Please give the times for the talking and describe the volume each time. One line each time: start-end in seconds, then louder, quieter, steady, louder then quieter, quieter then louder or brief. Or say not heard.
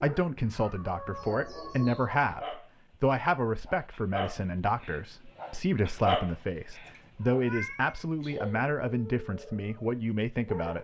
0.0-10.7 steady.